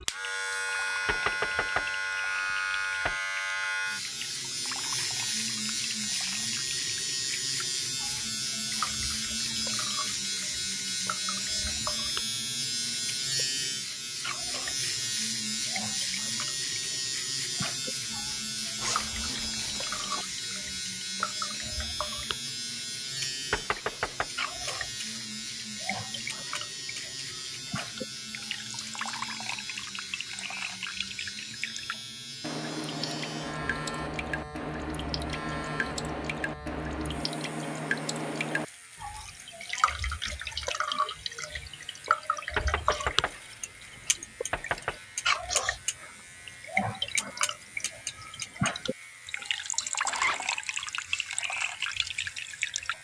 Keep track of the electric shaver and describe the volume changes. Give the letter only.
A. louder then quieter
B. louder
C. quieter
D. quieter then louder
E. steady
C.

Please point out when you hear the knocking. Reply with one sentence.
You can hear the knocking from 1.1 to 3.1 s, from 23.5 to 24.3 s and from 42.5 to 45.0 s.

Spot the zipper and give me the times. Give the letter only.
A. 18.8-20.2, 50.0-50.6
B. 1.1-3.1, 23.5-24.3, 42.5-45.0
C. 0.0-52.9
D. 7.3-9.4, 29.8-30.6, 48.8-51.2
A.